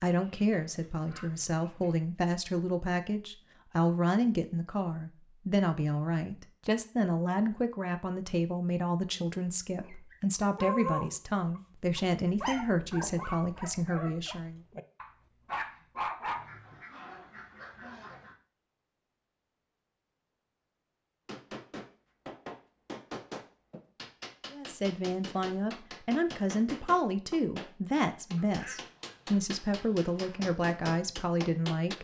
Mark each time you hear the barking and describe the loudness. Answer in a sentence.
The barking can be heard from 9.8 to 16.8 s, getting quieter then louder.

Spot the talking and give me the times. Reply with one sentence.
The talking can be heard from 0.0 to 14.6 s and from 24.5 to 31.9 s.